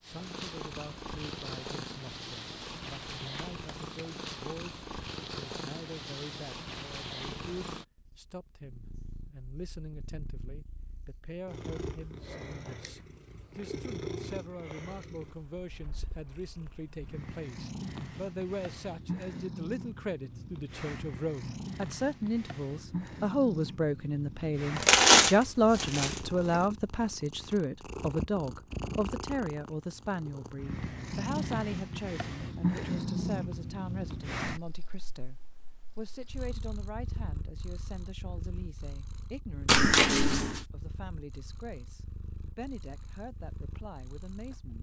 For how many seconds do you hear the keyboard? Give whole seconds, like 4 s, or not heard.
not heard.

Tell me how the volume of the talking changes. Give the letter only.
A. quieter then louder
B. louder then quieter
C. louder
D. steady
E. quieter
B.